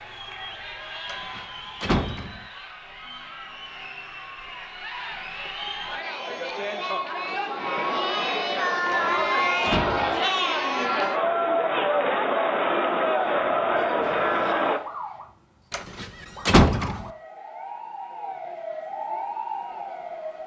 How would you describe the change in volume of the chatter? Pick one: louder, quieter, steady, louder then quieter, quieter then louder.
louder.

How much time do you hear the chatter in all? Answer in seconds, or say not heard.
15 s.